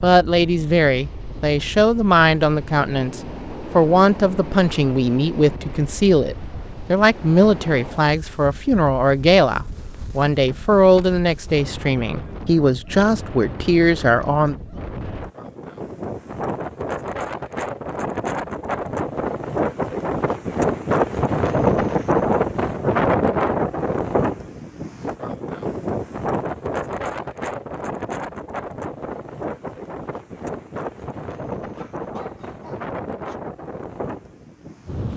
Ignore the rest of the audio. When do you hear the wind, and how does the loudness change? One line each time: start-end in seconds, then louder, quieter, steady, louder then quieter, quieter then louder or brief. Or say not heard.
0.0-35.1 louder then quieter.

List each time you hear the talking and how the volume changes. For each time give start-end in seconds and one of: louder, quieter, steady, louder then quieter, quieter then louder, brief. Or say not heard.
0.0-14.6 steady.